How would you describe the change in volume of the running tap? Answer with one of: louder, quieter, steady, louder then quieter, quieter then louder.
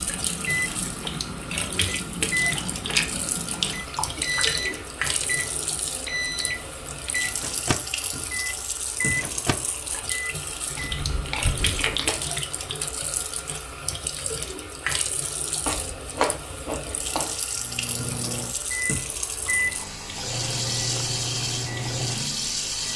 steady.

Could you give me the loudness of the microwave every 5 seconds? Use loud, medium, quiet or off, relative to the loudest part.
loud, loud, off, loud, loud.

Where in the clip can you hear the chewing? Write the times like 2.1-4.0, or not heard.
2.5-4.8, 10.8-12.3, 15.7-17.4.